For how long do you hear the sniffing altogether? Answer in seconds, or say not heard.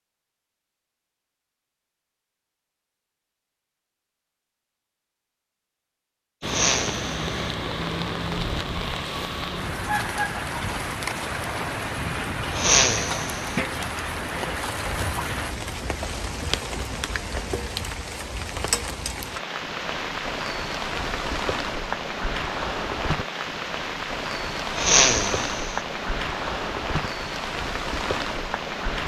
3 s.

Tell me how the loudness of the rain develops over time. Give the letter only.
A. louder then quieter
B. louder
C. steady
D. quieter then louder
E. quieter
C.